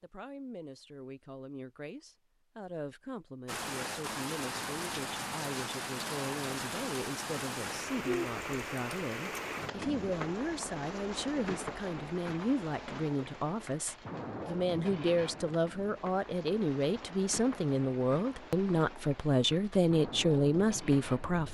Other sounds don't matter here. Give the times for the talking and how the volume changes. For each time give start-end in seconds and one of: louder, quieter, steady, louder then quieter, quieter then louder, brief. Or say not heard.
0.0-21.4 louder.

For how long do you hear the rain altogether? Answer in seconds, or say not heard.
18 s.